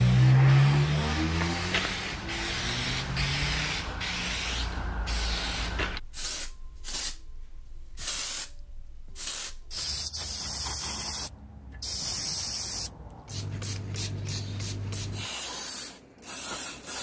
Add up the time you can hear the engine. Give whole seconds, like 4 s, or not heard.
4 s.